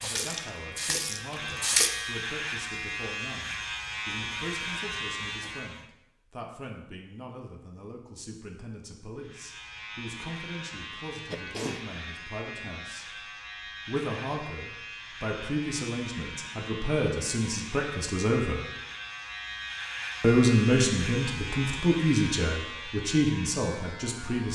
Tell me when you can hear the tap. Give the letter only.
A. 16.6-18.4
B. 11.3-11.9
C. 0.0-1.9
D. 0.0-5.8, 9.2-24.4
C.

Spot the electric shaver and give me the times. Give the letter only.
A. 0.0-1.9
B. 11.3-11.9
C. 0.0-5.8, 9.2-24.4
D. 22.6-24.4
C.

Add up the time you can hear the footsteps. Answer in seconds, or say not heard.
not heard.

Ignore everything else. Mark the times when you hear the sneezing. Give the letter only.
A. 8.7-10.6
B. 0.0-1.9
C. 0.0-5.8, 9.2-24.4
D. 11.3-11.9
D.